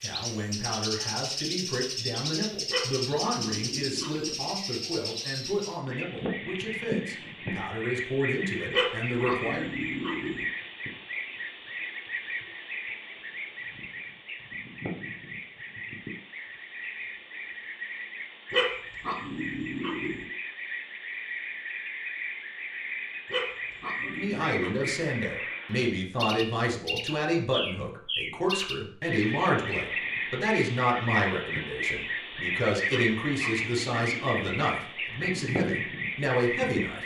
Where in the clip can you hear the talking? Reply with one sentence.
The talking can be heard from 0.0 to 9.7 s and from 24.0 to 37.0 s.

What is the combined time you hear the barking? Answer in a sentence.
You can hear the barking for 9 seconds altogether.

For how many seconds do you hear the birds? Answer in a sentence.
You can hear the birds for 37 seconds altogether.